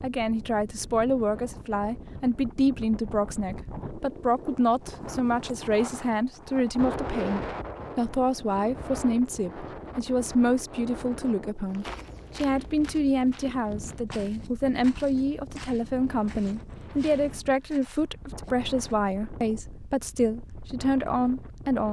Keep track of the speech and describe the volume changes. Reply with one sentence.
The loudness of the speech stays about the same.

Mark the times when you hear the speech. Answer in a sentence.
You can hear the speech from 0.0 to 21.8 s.